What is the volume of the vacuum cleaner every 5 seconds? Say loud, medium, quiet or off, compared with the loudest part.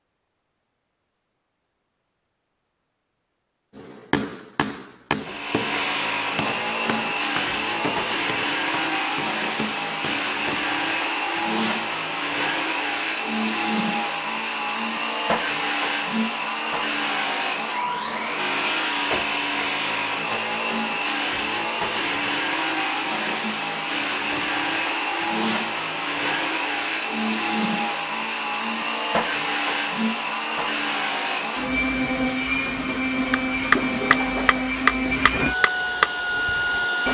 off, loud, loud, loud, loud, loud, loud, loud.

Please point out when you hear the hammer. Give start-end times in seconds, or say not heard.
3.8-10.7, 33.3-36.9.